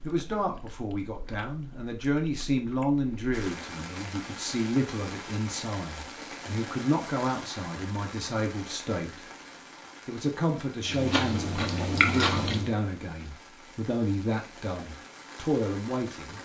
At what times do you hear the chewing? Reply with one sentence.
You can hear the chewing from 0.0 to 3.4 s and from 10.8 to 12.8 s.